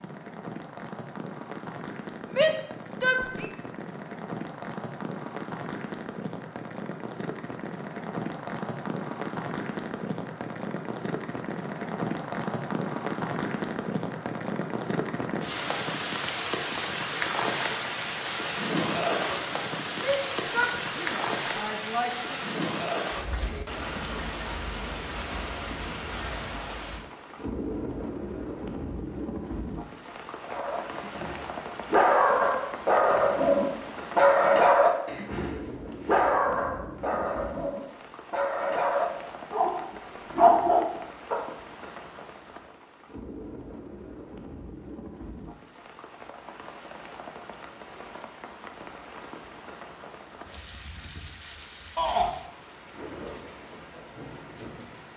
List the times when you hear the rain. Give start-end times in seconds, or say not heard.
0.0-55.1.